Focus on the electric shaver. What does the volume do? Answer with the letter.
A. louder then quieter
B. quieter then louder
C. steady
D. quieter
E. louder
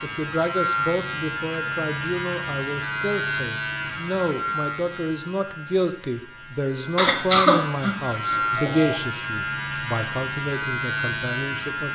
B.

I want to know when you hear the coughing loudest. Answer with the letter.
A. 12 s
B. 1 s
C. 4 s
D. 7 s
D.